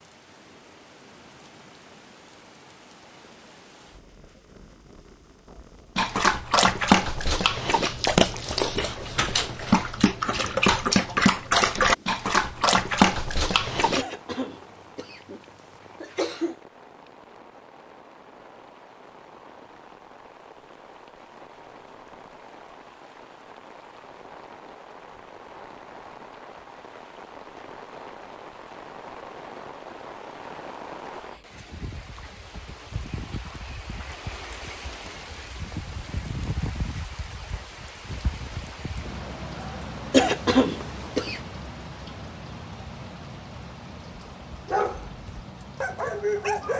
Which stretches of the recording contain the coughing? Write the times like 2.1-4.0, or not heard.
13.9-16.6, 40.1-41.4.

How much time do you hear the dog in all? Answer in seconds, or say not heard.
10 s.